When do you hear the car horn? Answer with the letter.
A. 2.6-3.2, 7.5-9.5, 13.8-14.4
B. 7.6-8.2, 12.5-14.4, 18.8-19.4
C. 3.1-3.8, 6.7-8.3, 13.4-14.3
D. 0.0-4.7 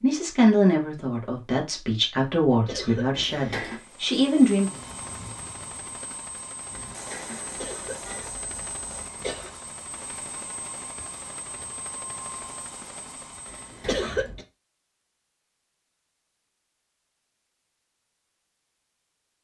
C.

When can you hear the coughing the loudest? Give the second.
14 s.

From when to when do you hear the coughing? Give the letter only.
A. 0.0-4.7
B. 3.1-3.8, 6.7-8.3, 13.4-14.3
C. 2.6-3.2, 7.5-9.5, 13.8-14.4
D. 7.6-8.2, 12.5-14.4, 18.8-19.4
C.